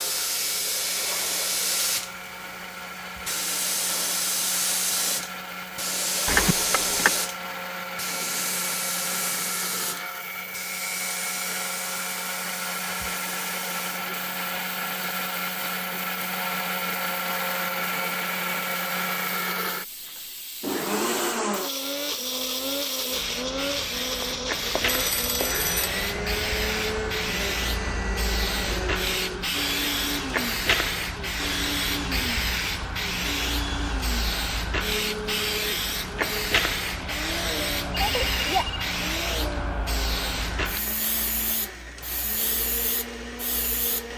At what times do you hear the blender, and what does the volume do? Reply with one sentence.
The blender can be heard from 0.0 to 44.1 s, getting louder then quieter.